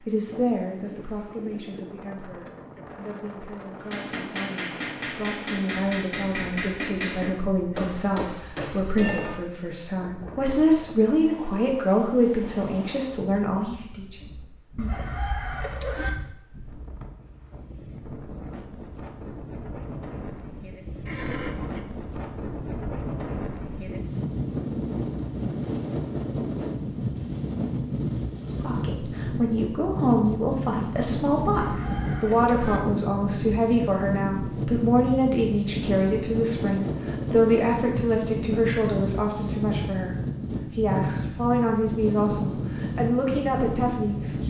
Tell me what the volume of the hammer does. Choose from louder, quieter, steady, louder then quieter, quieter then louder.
steady.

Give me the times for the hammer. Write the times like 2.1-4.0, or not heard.
3.8-9.4.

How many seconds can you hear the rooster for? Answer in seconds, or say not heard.
3 s.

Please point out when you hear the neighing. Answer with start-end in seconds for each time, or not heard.
21.1-21.9.